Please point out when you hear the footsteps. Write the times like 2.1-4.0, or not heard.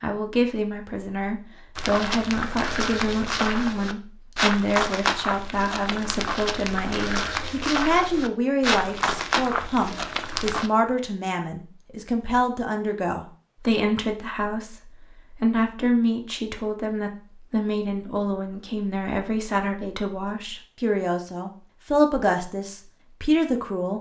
1.8-10.7.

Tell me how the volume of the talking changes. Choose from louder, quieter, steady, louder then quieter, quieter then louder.
steady.